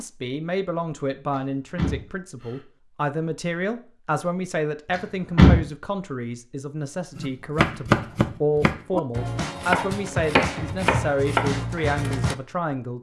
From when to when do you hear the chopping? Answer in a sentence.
The chopping can be heard from 7.2 to 12.3 s.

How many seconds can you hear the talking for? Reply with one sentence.
The talking can be heard for 13 seconds in total.